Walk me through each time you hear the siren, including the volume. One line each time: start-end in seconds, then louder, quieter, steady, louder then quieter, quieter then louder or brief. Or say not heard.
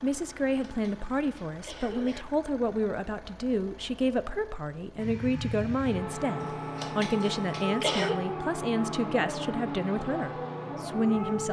5.0-11.4 steady.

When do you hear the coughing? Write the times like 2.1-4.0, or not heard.
0.6-2.2, 6.4-8.2.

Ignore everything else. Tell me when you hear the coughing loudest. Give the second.
8 s.